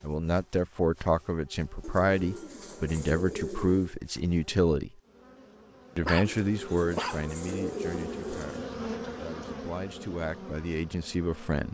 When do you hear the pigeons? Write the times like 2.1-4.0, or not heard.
1.8-4.0, 6.2-8.7.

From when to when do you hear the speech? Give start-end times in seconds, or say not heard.
0.0-4.9, 6.0-11.6.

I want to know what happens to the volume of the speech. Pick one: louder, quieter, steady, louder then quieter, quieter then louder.
quieter then louder.